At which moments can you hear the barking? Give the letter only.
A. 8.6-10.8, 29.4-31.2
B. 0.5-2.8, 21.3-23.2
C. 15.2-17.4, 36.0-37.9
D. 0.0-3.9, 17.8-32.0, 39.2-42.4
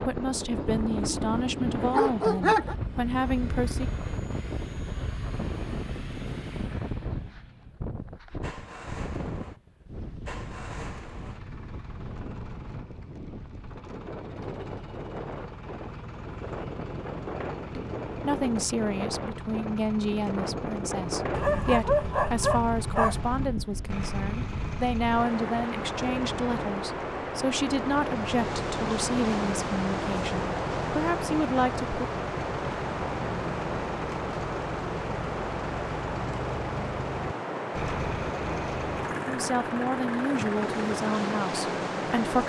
B.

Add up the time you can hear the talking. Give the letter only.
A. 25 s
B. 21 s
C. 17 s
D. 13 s
B.